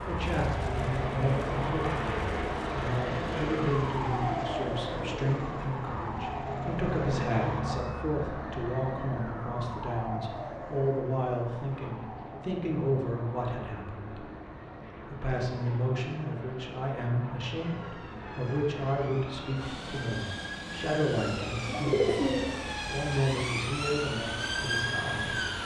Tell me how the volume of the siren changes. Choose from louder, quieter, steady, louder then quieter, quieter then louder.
quieter then louder.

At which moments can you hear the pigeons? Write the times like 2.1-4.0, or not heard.
21.4-22.6.